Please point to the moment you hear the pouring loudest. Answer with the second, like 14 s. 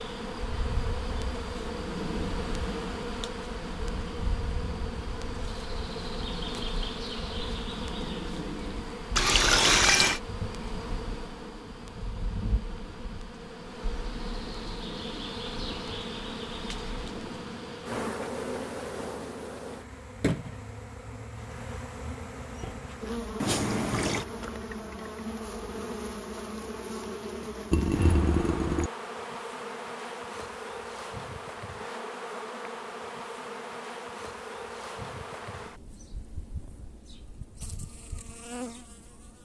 10 s.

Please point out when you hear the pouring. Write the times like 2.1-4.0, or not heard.
9.2-10.2, 23.4-24.2, 27.7-28.9.